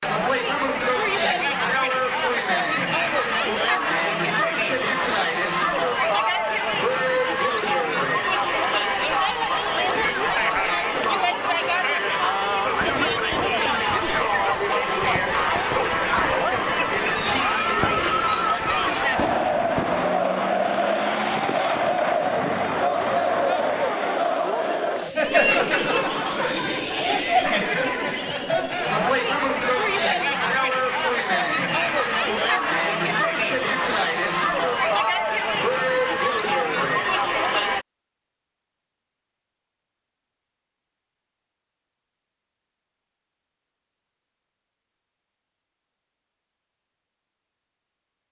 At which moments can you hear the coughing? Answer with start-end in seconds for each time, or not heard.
not heard.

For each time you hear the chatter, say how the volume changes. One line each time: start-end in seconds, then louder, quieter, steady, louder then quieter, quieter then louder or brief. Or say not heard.
0.0-37.9 steady.